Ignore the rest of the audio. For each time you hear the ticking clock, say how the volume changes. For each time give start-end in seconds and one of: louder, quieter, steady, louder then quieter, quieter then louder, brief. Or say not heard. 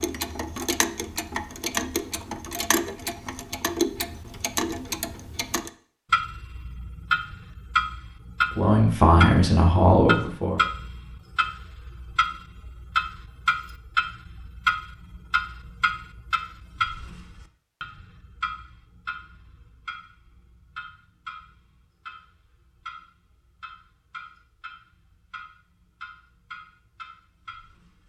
0.0-28.0 quieter.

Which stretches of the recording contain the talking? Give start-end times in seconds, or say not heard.
8.6-10.6.